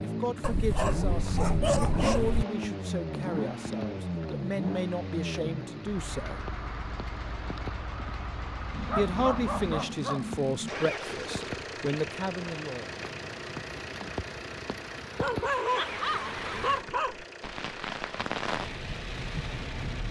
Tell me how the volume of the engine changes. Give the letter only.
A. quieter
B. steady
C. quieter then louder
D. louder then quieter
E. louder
A.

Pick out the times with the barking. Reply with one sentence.
The barking can be heard from 0.4 to 2.5 s, from 8.7 to 10.7 s and from 15.2 to 17.1 s.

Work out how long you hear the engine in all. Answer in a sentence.
You can hear the engine for 20 seconds altogether.